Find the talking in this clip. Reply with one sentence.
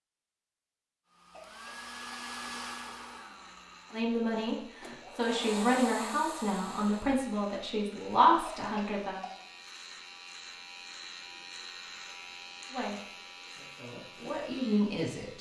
You can hear the talking from 3.9 to 9.2 s and from 12.7 to 15.3 s.